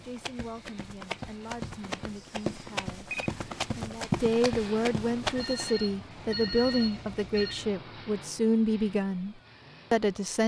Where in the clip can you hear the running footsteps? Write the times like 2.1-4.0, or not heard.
0.0-5.7.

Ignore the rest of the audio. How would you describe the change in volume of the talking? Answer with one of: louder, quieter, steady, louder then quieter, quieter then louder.
louder.